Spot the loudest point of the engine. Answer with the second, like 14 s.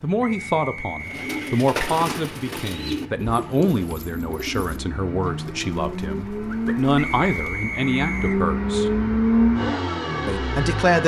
9 s.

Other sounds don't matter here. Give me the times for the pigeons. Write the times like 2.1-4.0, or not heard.
1.0-7.6.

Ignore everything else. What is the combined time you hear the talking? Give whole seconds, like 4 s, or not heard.
10 s.